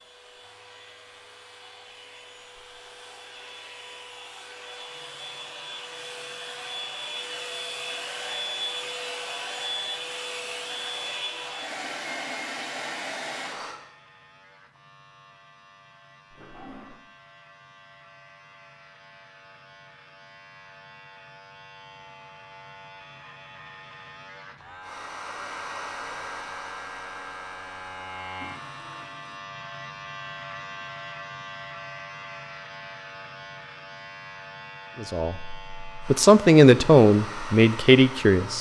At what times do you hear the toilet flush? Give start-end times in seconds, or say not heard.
16.3-17.0, 28.4-29.4.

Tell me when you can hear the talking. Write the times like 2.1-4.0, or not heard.
35.0-38.5.